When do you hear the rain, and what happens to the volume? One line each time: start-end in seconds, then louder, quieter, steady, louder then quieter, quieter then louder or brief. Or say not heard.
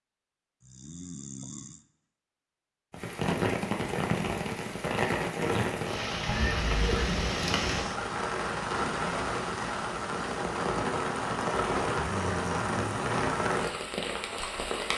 2.9-14.9 steady.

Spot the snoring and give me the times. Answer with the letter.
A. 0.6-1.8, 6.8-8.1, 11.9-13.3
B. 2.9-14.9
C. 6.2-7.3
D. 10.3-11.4
A.